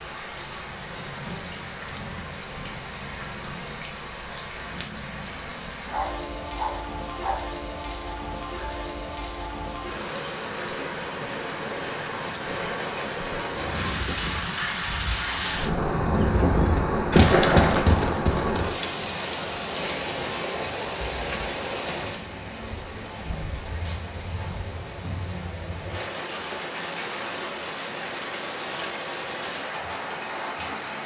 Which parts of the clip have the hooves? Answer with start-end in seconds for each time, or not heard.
13.6-18.9.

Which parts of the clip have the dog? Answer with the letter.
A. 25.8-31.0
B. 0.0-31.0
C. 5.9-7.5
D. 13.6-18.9
C.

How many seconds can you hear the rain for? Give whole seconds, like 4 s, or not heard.
31 s.